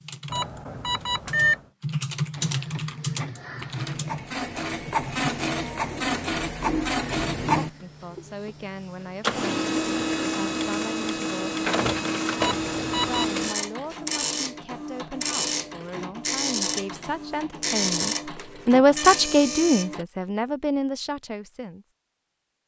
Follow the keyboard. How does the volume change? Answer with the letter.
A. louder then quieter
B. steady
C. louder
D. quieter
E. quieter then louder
A.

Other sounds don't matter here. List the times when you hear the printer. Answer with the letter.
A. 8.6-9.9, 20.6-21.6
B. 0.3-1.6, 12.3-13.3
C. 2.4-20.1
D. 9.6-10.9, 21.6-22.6
C.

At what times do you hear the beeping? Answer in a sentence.
You can hear the beeping from 0.3 to 1.6 s and from 12.3 to 13.3 s.